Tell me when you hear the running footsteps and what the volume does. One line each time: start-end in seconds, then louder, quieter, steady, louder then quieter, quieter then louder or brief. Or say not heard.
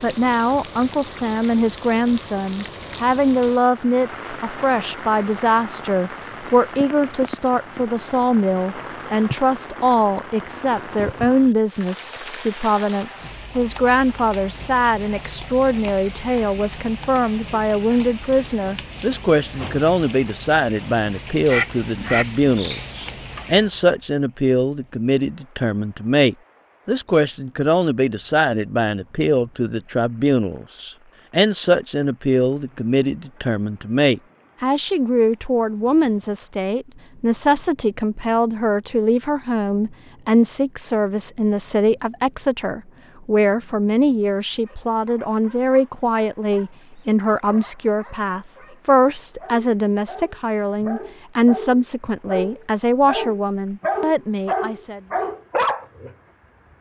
not heard.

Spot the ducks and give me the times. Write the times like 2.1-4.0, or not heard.
21.4-22.9.